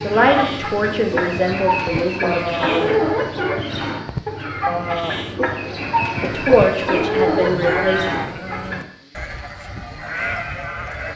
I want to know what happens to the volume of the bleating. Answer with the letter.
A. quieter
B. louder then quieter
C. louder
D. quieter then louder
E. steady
E.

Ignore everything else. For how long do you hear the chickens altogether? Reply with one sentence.
You can hear the chickens for 9 seconds altogether.